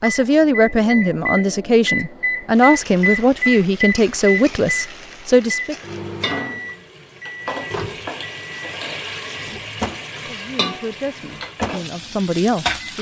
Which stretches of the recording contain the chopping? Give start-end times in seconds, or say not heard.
not heard.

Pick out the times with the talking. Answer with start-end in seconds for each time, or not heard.
0.0-5.8, 10.2-12.9.